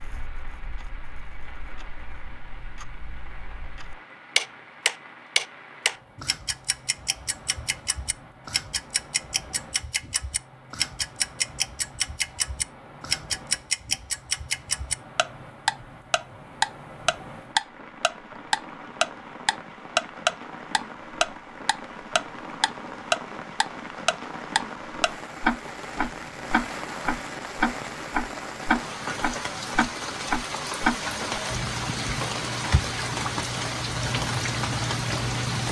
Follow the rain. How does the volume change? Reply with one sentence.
The loudness of the rain goes up.